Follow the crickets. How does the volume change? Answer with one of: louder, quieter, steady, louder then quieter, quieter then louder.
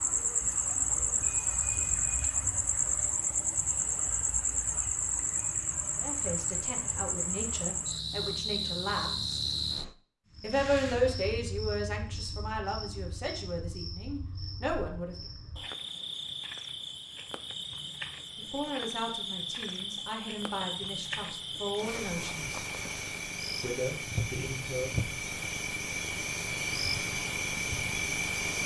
quieter then louder.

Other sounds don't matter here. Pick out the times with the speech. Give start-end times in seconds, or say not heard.
6.0-9.4, 10.4-15.2, 18.4-22.6, 23.6-25.0.